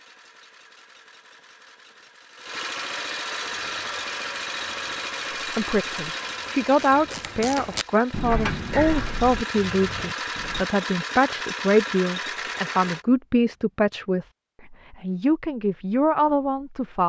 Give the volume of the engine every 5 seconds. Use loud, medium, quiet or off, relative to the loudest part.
loud, loud, loud, off.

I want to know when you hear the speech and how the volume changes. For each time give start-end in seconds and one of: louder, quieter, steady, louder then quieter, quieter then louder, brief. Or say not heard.
5.5-17.0 steady.